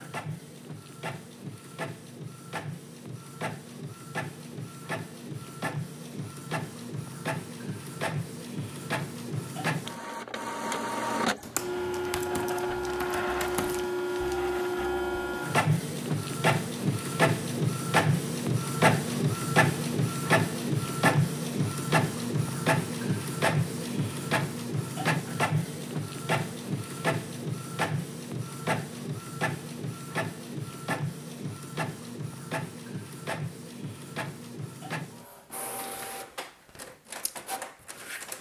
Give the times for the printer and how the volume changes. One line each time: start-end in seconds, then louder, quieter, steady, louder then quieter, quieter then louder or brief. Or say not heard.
0.0-38.3 louder then quieter.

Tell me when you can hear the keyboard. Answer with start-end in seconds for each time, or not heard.
11.4-13.8.